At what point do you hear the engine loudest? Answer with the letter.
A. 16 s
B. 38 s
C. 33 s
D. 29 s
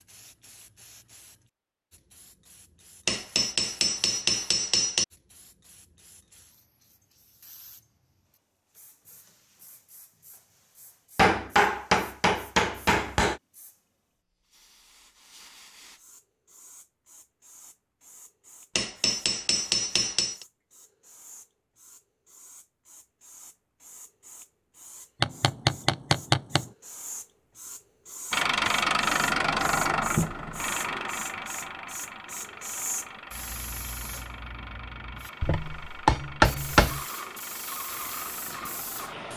D.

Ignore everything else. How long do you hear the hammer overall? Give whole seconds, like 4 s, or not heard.
9 s.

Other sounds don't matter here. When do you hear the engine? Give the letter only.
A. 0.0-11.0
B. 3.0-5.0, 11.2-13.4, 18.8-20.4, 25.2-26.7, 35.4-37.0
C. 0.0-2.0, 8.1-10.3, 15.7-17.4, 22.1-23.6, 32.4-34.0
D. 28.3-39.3
D.